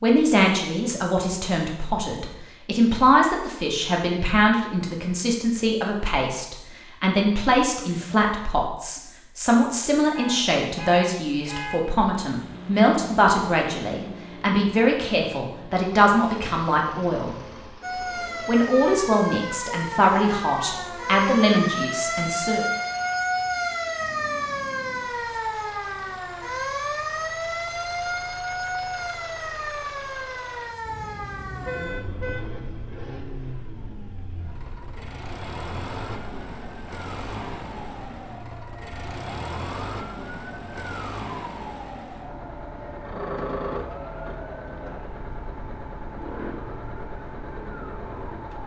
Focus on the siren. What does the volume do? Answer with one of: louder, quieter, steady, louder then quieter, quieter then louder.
quieter.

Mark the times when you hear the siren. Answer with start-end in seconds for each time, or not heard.
17.8-48.6.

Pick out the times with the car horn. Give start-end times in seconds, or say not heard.
10.2-11.8, 30.9-32.6.